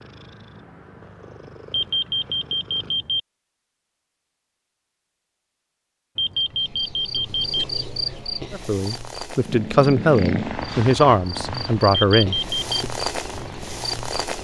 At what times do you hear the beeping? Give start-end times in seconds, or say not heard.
1.7-3.2, 6.2-7.7, 12.2-12.7.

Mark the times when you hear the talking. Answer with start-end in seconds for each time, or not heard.
8.5-12.9.